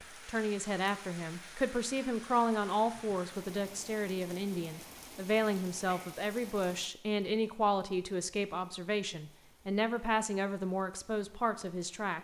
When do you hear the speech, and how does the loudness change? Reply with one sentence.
You can hear the speech from 0.0 to 12.2 s, at a steady volume.